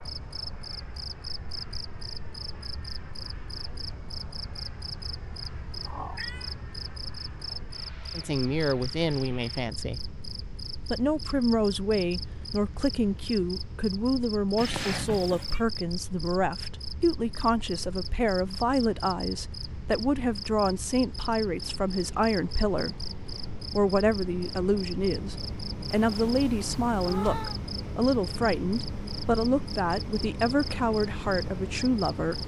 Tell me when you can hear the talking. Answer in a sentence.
You can hear the talking from 8.2 to 10.0 s, from 10.8 to 23.1 s and from 23.8 to 32.4 s.